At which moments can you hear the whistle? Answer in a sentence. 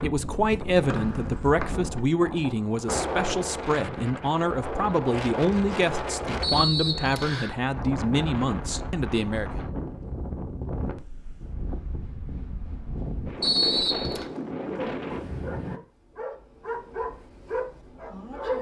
The whistle can be heard from 0.9 to 1.7 s, from 6.4 to 7.5 s and from 13.4 to 14.2 s.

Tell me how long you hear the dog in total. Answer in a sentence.
The dog can be heard for 4 seconds in total.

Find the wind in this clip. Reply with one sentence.
You can hear the wind from 0.0 to 15.8 s.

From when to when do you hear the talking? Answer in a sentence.
The talking can be heard from 0.0 to 9.6 s.